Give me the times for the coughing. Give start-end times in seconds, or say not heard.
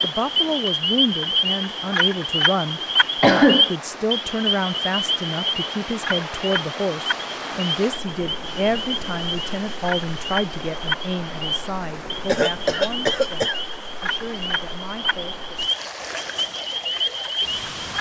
3.2-3.7, 8.4-10.3, 12.2-13.6.